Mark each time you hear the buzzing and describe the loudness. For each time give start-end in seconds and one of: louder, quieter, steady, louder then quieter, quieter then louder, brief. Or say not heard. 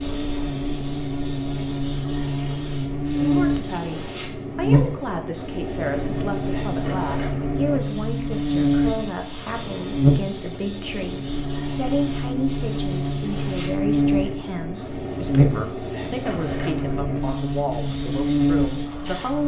0.0-19.4 steady.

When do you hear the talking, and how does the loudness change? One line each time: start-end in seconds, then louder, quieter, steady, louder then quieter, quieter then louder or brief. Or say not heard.
3.1-19.4 steady.